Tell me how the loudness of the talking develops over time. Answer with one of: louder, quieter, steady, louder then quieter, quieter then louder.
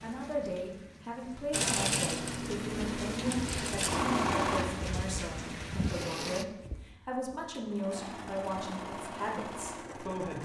steady.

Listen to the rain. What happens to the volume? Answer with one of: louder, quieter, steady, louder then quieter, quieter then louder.
louder.